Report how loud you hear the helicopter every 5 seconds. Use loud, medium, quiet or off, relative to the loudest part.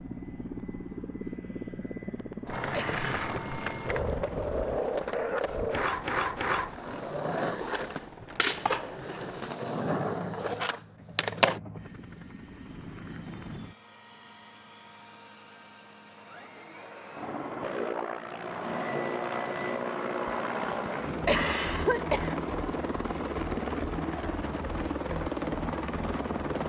medium, quiet, quiet, loud, loud, loud.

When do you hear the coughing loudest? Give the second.
21 s.